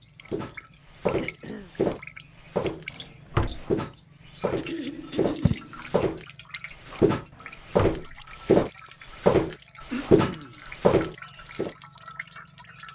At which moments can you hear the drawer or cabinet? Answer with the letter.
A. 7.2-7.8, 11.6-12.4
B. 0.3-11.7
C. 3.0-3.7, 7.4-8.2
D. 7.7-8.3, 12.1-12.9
C.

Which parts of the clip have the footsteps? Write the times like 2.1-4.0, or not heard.
0.3-11.7.